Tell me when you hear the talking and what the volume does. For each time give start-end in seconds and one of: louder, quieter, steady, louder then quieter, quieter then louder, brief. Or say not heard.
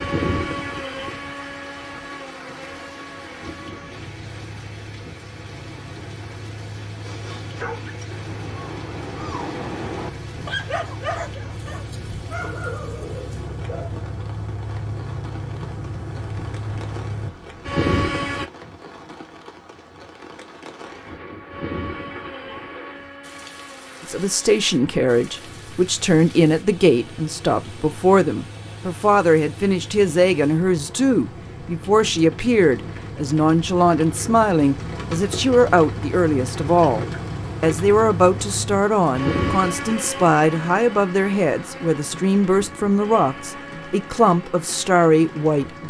24.0-45.8 steady.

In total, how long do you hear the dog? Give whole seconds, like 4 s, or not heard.
7 s.